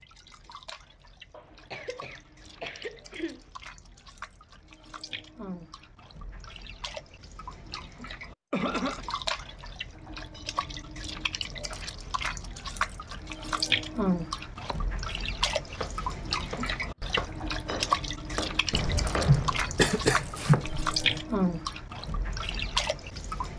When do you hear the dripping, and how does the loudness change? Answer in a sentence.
The dripping can be heard from 0.0 to 23.5 s, getting louder.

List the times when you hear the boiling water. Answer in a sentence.
You can't hear the boiling water here.